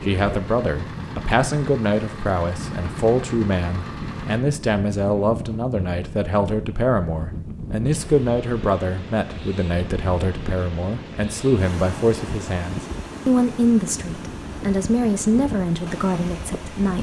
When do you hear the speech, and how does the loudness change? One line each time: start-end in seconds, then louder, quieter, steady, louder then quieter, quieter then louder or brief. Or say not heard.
0.0-16.9 steady.